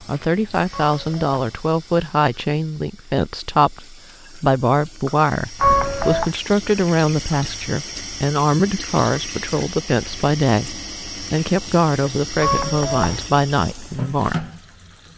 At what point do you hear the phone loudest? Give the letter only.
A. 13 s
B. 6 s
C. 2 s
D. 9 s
B.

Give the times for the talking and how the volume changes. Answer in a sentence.
You can hear the talking from 0.1 to 14.4 s, at a steady volume.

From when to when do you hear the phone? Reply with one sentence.
The phone can be heard from 0.7 to 1.6 s, from 5.6 to 6.3 s and from 12.4 to 13.3 s.